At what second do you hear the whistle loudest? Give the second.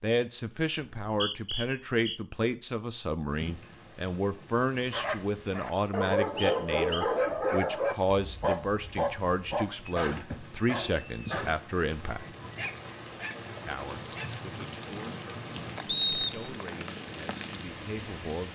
16 s.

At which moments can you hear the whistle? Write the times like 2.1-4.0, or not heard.
1.1-2.2, 6.3-7.1, 15.8-16.6.